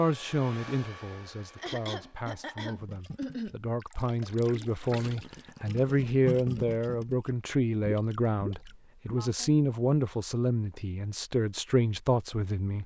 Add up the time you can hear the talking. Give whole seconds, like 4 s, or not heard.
13 s.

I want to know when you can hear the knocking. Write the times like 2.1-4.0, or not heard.
not heard.